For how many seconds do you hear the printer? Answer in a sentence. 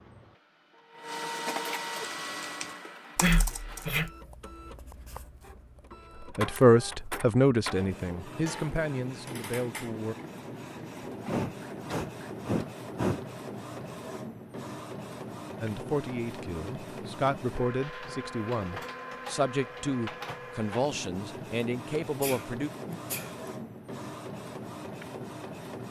The printer can be heard for 26 seconds in total.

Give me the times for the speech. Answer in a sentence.
The speech can be heard from 6.2 to 10.2 s and from 15.6 to 22.7 s.